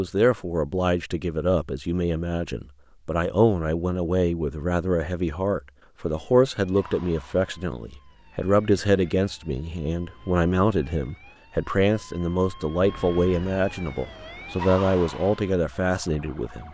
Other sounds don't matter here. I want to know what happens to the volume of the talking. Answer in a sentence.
The volume of the talking stays about the same.